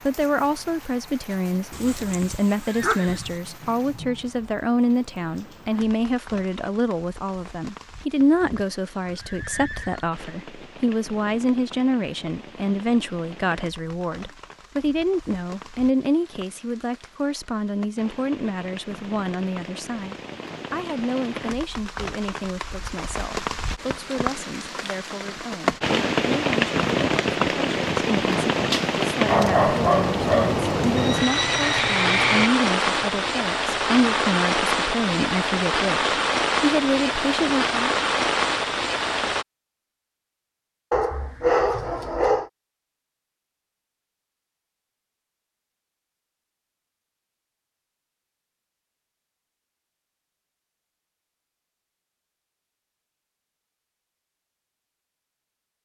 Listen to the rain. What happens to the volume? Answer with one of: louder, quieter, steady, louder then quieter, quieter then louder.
louder.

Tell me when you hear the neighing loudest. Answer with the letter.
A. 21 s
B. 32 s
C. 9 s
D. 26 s
B.